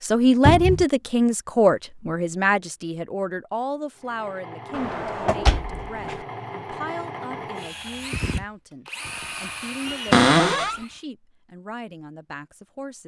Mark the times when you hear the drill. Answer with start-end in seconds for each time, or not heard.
4.0-11.1.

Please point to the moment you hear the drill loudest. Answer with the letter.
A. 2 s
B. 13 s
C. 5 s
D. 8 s
D.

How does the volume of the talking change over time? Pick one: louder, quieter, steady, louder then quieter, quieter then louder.
quieter.